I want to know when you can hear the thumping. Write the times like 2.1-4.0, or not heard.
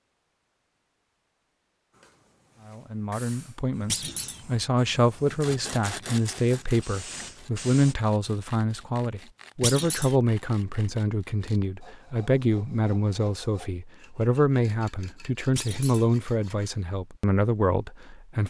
3.9-4.4, 9.6-10.2, 15.6-16.1.